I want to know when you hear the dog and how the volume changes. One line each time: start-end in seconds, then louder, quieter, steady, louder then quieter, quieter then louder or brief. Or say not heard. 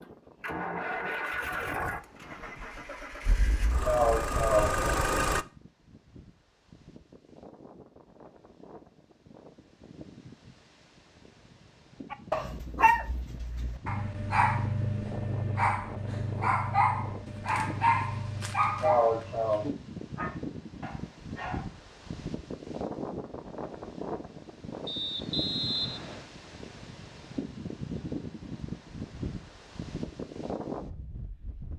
12.1-21.7 quieter.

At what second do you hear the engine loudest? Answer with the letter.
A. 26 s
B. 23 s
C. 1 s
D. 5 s
D.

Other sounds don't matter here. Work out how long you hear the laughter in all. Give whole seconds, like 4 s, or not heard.
2 s.